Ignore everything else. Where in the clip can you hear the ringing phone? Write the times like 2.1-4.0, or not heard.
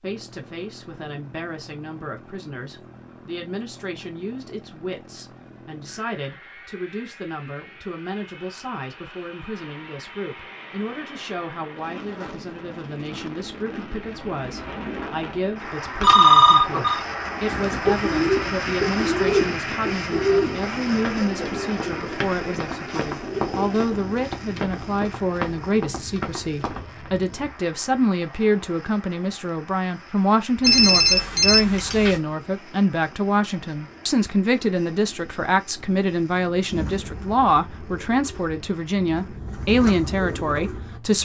16.0-17.0, 30.6-32.2.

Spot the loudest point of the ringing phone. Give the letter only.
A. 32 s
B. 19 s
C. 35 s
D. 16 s
D.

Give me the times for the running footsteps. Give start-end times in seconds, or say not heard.
20.9-27.1.